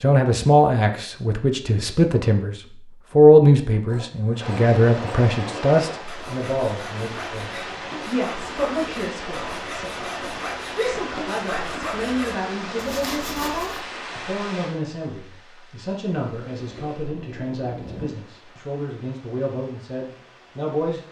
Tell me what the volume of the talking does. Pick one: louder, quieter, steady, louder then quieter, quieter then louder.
quieter.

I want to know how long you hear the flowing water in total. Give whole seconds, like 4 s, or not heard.
17 s.